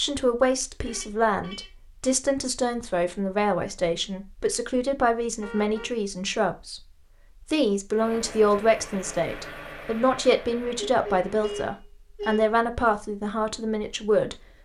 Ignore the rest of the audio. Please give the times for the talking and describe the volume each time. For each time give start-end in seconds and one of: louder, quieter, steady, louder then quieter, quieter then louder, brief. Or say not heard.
0.0-14.4 steady.